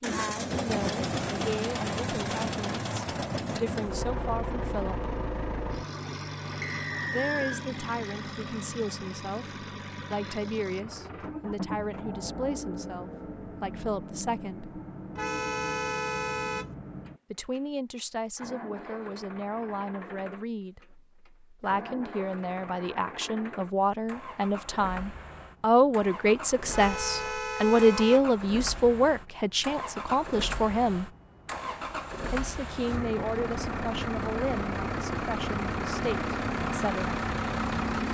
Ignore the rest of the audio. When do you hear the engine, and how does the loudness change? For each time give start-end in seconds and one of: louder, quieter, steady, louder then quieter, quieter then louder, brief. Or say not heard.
0.0-38.0 quieter then louder.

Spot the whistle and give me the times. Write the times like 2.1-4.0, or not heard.
6.6-7.7.